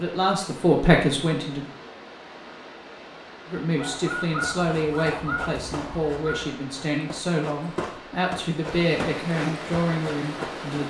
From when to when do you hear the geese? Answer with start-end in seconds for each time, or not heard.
3.8-6.5.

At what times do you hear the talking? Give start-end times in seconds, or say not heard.
0.0-1.7, 3.5-10.8.